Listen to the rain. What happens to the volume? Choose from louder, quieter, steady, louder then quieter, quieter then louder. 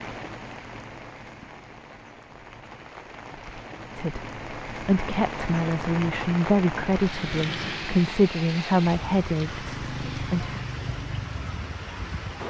louder.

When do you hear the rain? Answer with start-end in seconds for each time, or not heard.
0.0-12.4.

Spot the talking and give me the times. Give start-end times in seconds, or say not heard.
4.0-10.6.